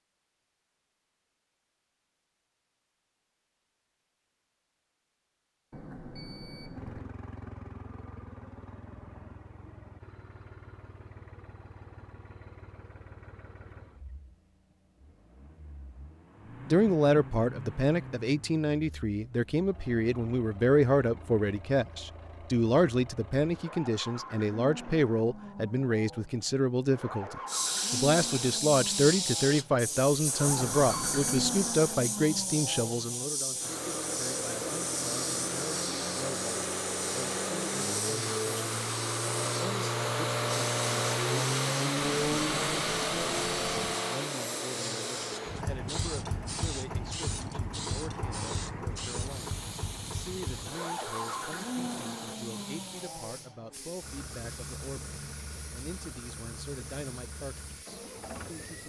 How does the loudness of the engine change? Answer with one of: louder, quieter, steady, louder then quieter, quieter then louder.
louder then quieter.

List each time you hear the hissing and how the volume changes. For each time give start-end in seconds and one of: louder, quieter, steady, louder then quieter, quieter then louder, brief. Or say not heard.
27.4-58.8 quieter.